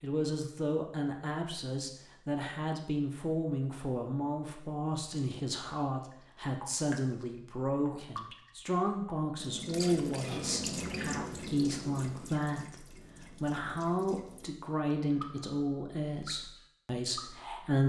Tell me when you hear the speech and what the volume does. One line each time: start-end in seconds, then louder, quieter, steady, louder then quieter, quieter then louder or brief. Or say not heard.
0.0-17.8 steady.